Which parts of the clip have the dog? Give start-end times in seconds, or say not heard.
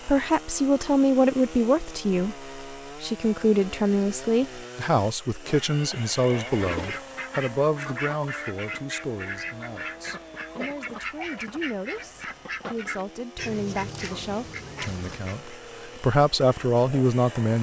not heard.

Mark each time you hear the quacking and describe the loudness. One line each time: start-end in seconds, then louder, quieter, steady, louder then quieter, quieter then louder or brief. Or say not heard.
6.4-15.6 steady.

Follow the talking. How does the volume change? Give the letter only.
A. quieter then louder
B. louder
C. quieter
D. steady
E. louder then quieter
A.